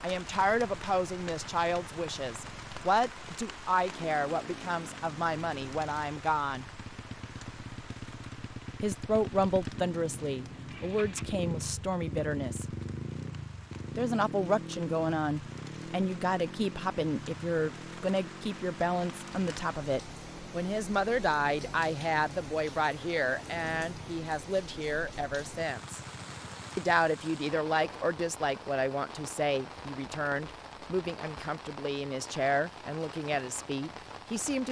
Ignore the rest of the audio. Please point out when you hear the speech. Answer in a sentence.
The speech can be heard from 0.0 to 6.7 s, from 8.8 to 12.7 s, from 13.9 to 26.0 s and from 26.8 to 34.6 s.